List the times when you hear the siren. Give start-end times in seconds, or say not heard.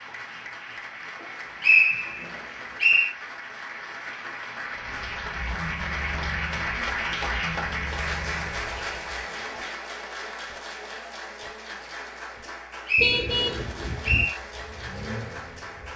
not heard.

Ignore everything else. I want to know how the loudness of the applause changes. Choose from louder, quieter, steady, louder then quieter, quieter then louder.
louder then quieter.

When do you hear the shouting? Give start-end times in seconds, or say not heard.
not heard.